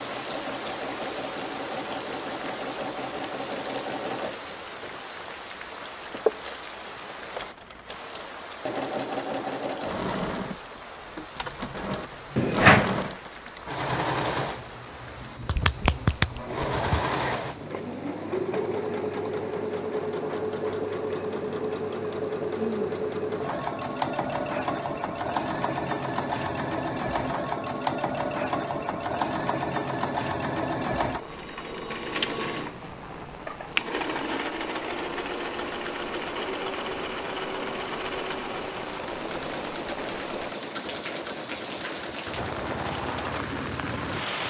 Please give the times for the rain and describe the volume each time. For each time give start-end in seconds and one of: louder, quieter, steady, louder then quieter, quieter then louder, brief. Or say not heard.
0.0-44.4 quieter then louder.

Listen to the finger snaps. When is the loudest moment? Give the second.
13 s.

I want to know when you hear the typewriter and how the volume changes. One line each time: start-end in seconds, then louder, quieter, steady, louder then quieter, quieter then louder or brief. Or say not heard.
not heard.